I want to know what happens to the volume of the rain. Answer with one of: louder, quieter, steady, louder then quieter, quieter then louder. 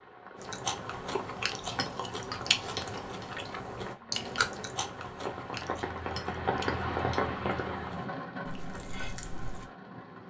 louder then quieter.